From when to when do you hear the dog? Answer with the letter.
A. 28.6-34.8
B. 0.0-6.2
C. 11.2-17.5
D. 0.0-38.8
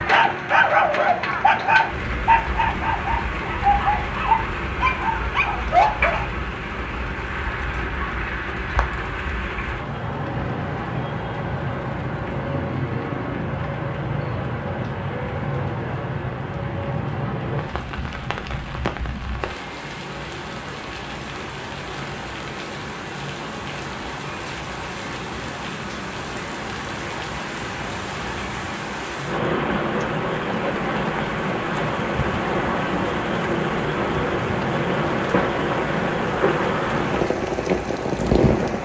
B.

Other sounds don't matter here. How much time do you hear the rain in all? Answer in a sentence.
You can hear the rain for 39 seconds altogether.